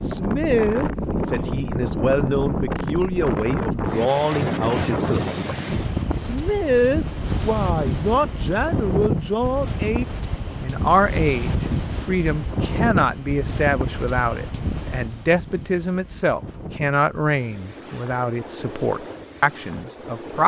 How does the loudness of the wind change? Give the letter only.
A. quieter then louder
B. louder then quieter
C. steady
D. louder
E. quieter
E.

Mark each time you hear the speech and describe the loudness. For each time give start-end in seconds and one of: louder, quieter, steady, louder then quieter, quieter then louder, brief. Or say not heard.
0.0-20.4 steady.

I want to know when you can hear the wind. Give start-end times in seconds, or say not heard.
0.0-20.4.